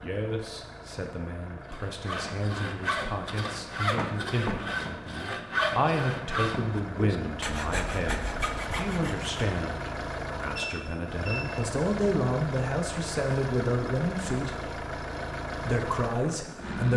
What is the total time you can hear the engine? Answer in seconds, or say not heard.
17 s.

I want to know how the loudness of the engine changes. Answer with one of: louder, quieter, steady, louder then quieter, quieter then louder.
louder.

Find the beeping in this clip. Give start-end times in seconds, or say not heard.
10.6-11.7.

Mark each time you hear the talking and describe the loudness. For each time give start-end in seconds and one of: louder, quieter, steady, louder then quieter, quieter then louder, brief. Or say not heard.
0.0-14.7 louder
15.6-16.9 brief.